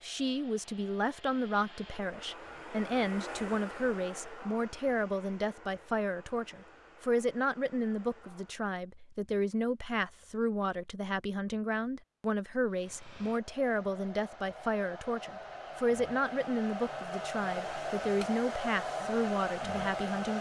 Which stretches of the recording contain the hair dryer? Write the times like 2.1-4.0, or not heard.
0.0-8.8, 12.7-20.3.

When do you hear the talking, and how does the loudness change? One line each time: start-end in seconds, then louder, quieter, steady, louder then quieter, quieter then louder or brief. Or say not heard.
0.0-20.3 steady.